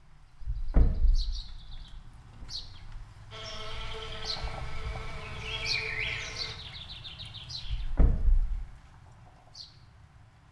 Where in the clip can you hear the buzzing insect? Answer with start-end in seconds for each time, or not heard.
3.3-6.5.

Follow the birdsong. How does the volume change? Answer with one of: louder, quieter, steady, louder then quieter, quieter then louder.
louder then quieter.